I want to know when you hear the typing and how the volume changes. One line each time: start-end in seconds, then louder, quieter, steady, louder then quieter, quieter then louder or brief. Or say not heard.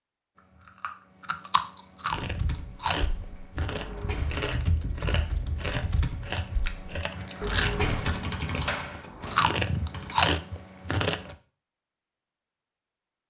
2.1-10.2 louder.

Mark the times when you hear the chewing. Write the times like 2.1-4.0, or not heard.
0.3-11.3.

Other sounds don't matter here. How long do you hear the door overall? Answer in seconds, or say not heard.
3 s.